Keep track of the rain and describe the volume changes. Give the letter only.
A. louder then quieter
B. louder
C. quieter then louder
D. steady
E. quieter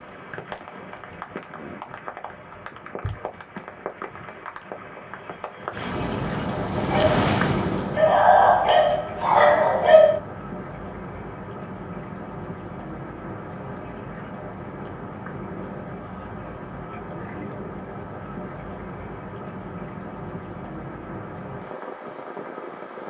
A.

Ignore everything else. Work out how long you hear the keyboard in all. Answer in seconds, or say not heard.
not heard.